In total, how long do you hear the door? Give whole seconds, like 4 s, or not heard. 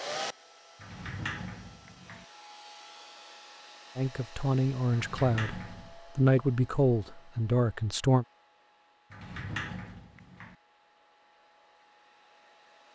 4 s.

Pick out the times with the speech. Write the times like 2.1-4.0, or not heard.
4.0-8.2.